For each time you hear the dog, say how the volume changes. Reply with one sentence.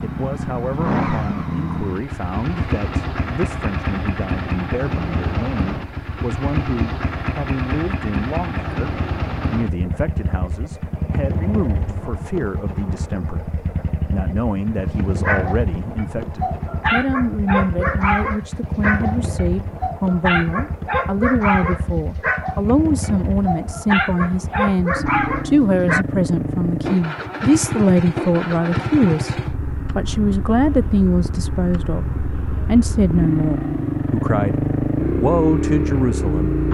The dog can be heard from 15.2 to 26.1 s, at a steady volume.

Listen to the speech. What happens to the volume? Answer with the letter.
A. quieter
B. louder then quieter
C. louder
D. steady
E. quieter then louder
C.